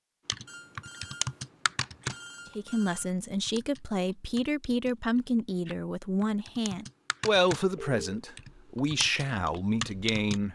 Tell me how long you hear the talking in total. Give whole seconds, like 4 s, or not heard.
8 s.